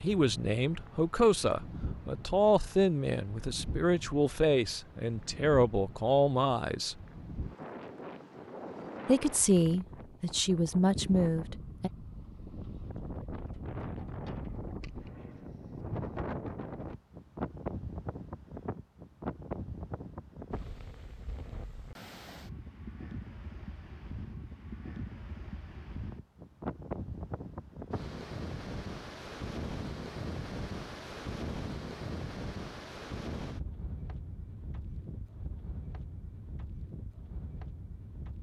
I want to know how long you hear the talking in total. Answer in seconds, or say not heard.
10 s.